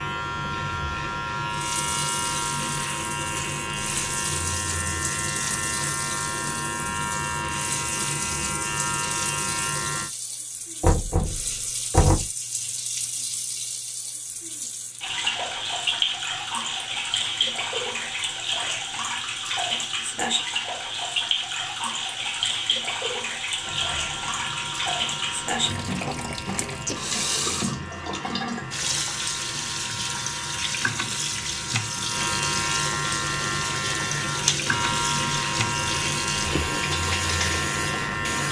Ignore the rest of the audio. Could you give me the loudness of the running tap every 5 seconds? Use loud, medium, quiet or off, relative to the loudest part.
medium, medium, medium, loud, loud, loud, loud, loud.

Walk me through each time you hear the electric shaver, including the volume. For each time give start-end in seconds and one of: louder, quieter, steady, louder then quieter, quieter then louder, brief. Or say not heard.
0.0-10.1 steady
23.6-38.4 louder.